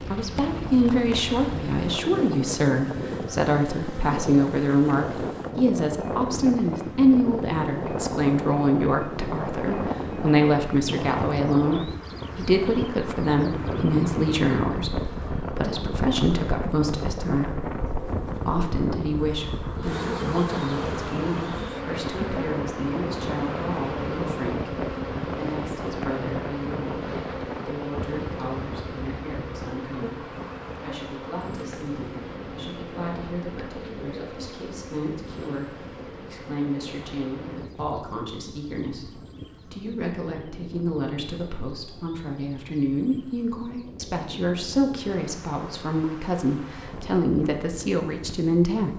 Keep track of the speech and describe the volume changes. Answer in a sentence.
The loudness of the speech goes down, then up.